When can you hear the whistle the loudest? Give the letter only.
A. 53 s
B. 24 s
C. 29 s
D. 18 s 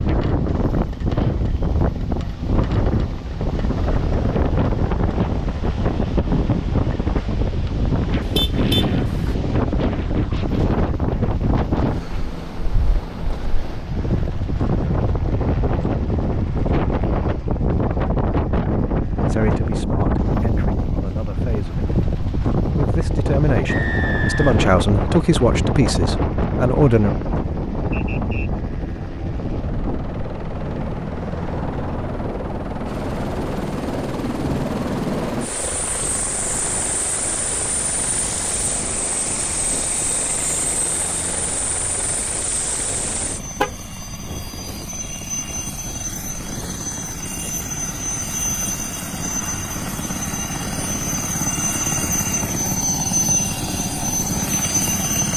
B.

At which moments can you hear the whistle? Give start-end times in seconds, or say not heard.
23.6-24.6, 27.9-28.5.